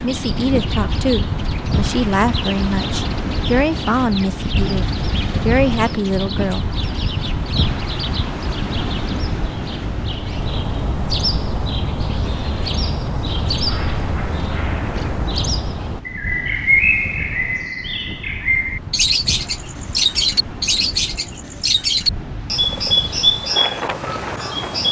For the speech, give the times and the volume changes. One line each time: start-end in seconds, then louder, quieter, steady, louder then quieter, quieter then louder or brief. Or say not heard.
0.0-6.8 steady.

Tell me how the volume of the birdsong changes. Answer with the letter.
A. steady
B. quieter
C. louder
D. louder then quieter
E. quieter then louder
C.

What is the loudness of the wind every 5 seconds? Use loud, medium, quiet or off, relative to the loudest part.
loud, loud, medium, medium, medium.